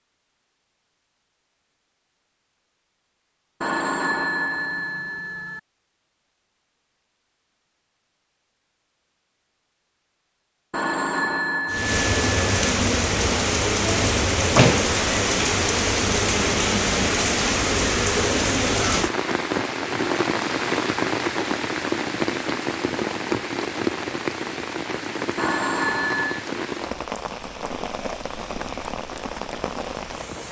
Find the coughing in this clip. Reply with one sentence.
You can't hear the coughing here.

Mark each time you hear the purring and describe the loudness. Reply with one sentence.
You can't hear the purring here.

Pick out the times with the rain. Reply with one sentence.
You can hear the rain from 11.7 to 30.4 s.